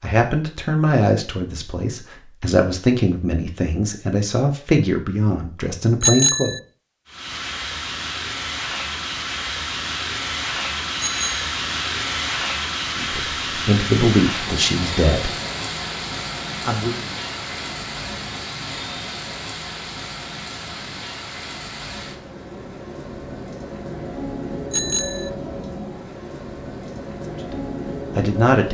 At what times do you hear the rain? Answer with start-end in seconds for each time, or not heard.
7.0-28.6.